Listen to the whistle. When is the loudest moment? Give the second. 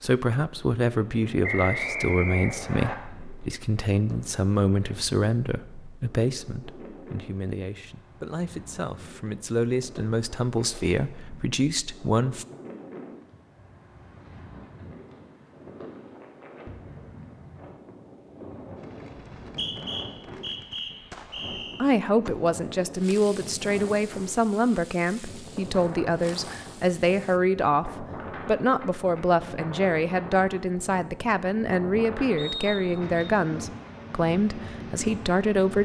2 s.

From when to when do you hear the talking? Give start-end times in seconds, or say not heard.
0.0-12.4, 21.8-35.8.